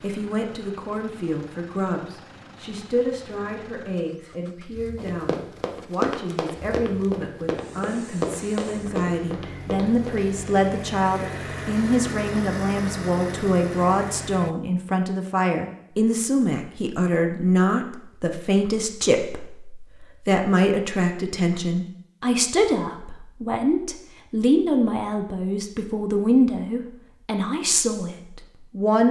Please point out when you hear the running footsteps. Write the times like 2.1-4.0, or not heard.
5.0-10.2.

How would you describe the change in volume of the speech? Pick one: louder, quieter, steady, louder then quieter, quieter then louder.
louder.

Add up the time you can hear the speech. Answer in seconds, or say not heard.
29 s.